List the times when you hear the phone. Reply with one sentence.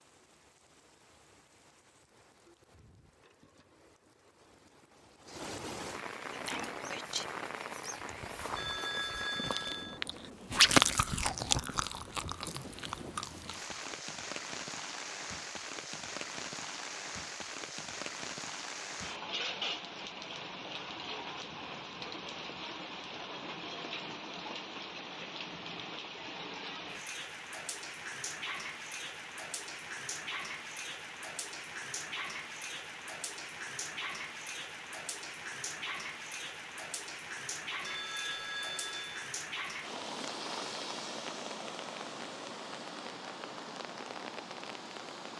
The phone can be heard from 8.6 to 10.0 s and from 37.8 to 39.3 s.